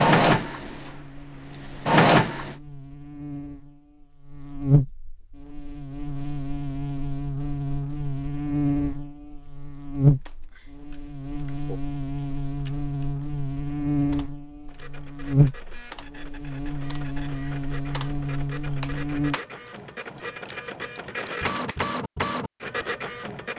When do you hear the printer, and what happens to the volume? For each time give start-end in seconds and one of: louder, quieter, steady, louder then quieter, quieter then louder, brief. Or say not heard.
0.0-2.5 brief
14.7-23.5 louder.